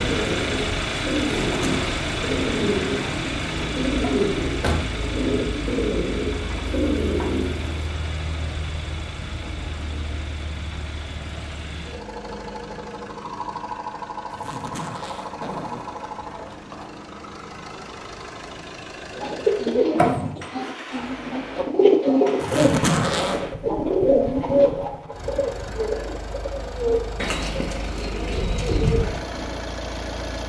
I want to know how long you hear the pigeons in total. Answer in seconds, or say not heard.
18 s.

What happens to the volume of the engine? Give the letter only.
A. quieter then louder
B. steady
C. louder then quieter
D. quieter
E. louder
D.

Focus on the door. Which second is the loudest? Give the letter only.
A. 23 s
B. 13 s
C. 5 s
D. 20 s
D.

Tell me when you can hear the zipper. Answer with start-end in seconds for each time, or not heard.
1.2-2.0, 14.3-16.9, 22.4-23.4.